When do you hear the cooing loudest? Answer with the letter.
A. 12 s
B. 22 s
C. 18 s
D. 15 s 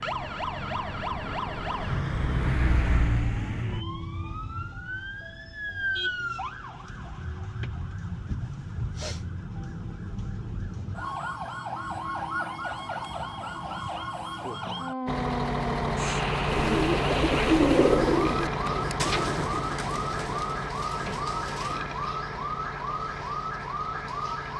C.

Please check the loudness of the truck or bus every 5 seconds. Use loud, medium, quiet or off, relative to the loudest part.
loud, off, off, loud, medium.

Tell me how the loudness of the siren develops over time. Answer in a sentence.
The loudness of the siren stays about the same.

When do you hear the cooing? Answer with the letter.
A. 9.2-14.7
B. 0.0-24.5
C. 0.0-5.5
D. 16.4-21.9
D.